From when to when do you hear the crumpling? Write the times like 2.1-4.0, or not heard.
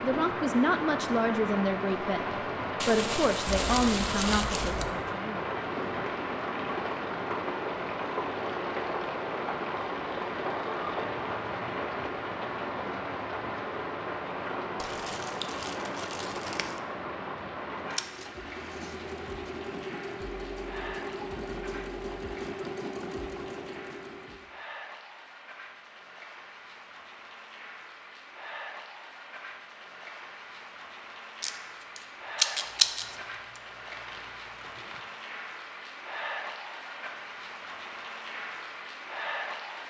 2.8-4.8, 14.8-16.8, 32.6-35.0.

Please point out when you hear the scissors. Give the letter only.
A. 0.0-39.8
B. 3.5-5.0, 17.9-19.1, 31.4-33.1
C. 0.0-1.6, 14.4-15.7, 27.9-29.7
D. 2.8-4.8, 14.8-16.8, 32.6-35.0
B.